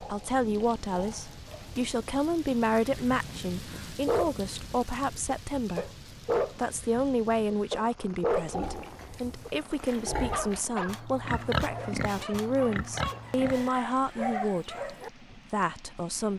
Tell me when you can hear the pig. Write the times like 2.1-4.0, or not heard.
0.0-2.1, 8.3-13.8.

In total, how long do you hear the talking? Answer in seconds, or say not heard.
16 s.